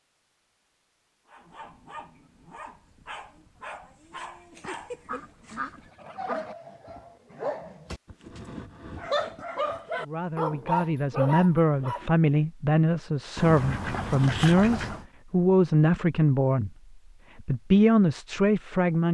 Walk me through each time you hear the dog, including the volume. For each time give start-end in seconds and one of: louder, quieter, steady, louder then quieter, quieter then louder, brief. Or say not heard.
1.2-12.1 louder.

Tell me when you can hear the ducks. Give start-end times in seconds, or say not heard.
4.6-6.5, 13.3-15.1.